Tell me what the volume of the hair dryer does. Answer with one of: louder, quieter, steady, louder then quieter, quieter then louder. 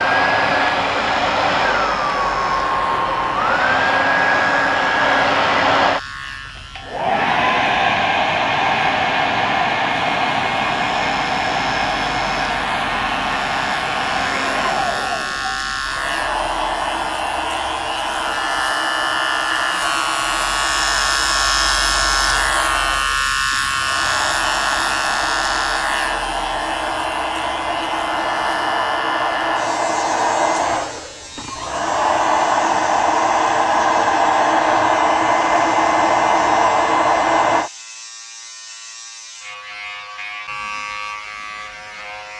quieter then louder.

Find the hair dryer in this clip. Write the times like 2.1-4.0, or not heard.
0.0-37.7.